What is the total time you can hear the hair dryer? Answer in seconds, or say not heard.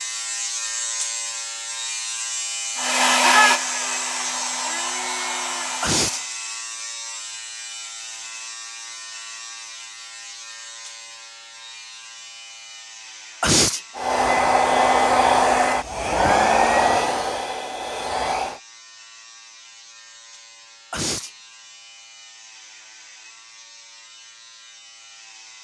8 s.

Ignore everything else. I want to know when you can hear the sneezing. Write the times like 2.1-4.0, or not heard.
5.8-6.2, 13.4-13.8, 20.9-21.3.